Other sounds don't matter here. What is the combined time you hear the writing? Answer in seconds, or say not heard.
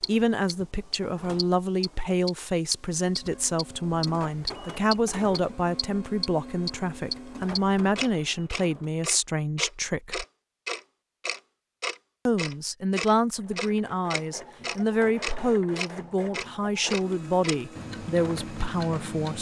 not heard.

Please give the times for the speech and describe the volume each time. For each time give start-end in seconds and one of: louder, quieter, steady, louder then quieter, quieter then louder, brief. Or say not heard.
0.1-10.2 steady
12.2-19.3 steady.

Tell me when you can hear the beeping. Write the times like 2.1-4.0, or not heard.
not heard.